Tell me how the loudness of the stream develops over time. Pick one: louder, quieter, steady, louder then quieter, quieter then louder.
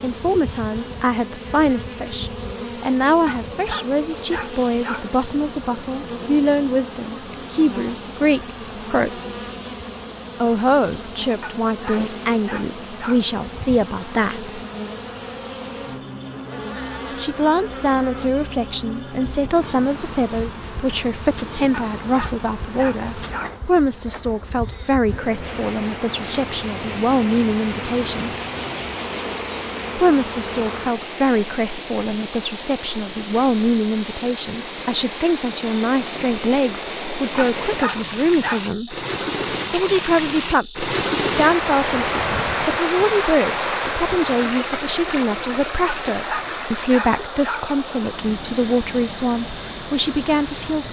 louder then quieter.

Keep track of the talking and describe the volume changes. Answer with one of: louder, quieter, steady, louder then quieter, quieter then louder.
steady.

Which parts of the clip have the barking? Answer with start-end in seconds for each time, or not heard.
3.2-5.1, 11.4-13.2, 21.7-23.6, 37.4-39.0, 45.9-47.7.